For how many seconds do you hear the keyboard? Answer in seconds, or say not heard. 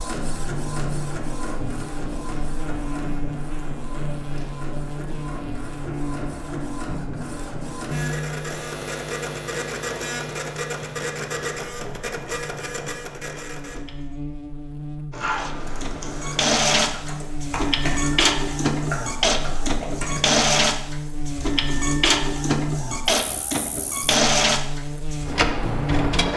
5 s.